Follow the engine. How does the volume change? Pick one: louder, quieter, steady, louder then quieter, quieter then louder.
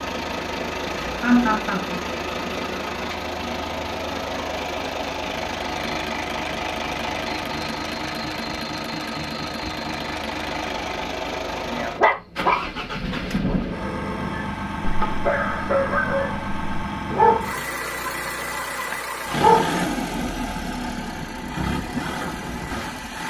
steady.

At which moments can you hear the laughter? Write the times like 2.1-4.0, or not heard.
1.2-2.0.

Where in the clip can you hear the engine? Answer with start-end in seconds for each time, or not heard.
0.0-23.2.